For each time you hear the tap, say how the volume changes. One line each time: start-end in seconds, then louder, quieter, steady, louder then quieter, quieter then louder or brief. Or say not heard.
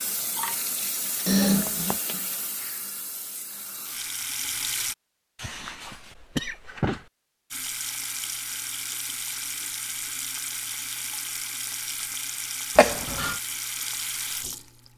0.0-5.0 quieter then louder
7.5-14.9 steady.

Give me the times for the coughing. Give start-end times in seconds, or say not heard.
1.2-2.0, 5.3-7.0, 12.8-13.3.